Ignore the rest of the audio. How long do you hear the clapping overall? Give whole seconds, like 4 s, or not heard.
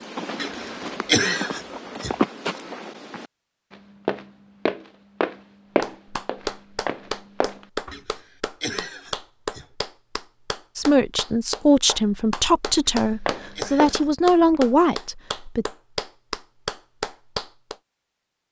12 s.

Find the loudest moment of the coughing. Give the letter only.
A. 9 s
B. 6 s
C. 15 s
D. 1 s
D.